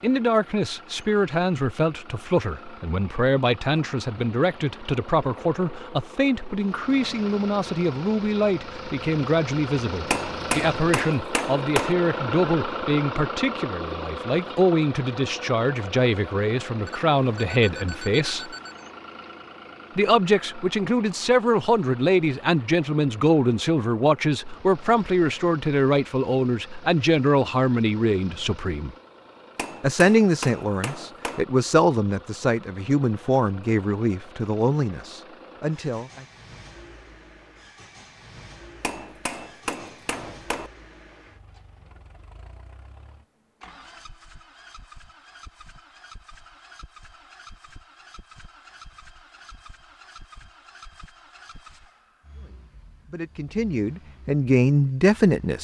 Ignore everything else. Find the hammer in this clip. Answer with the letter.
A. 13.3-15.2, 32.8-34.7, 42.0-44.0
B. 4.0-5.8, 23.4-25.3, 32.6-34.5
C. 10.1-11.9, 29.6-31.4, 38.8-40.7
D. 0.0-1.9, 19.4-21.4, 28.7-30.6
C.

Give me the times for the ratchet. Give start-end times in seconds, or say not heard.
not heard.